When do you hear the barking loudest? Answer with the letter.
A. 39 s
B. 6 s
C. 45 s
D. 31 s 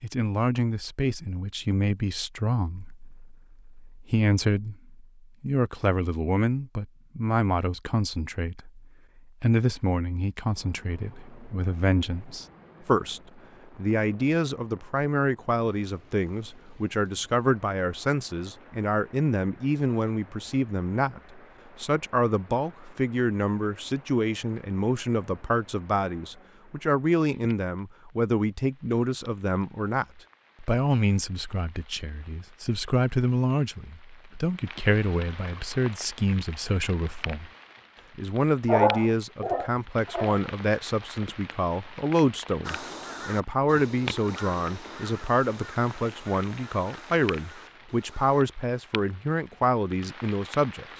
A.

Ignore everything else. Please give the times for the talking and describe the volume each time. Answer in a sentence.
The talking can be heard from 0.0 to 37.5 s, at a steady volume; and from 38.1 to 50.9 s, at a steady volume.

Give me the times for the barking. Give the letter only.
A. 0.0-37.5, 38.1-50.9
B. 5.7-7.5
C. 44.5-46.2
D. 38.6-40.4
D.